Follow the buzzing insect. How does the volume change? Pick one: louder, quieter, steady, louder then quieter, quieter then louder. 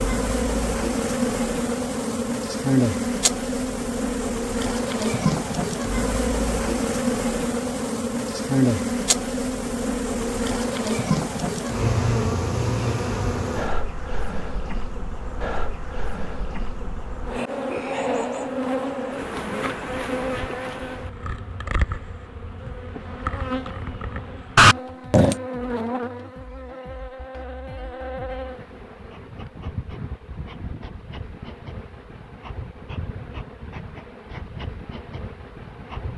quieter.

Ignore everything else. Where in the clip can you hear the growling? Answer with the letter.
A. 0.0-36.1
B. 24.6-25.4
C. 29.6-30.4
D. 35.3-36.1
B.